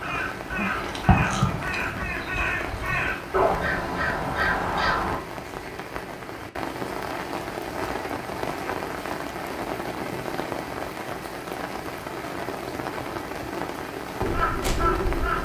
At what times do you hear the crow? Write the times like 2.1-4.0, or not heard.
0.0-5.2, 14.2-15.4.